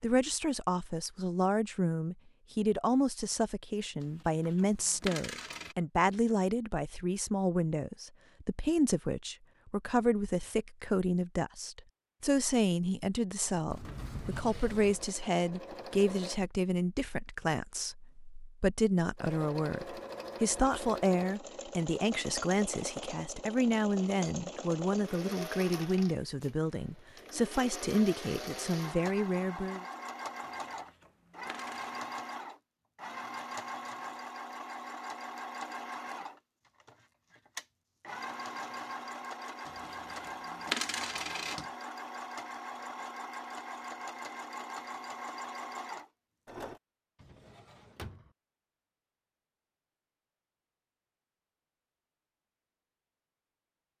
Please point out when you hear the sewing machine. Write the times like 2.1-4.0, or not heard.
14.3-16.4, 19.1-46.8.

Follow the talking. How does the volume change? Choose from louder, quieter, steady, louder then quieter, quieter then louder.
steady.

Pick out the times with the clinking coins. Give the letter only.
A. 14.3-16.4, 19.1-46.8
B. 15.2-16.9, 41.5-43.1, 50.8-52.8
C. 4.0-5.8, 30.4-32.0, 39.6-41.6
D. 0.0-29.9
C.